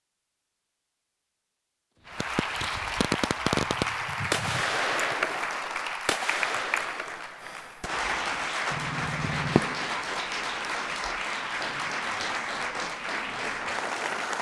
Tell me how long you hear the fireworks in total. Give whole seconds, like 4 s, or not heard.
8 s.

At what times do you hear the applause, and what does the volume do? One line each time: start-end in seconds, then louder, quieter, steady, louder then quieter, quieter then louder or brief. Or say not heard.
2.0-14.3 steady.